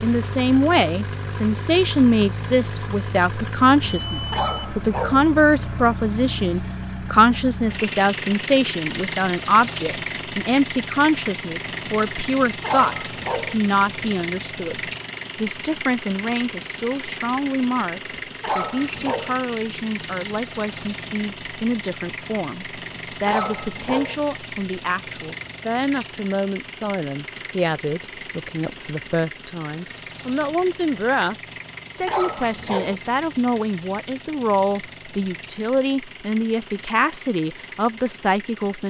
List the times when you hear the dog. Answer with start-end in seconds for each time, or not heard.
4.3-5.2, 12.6-13.6, 18.4-19.4, 23.2-24.1, 32.0-33.0.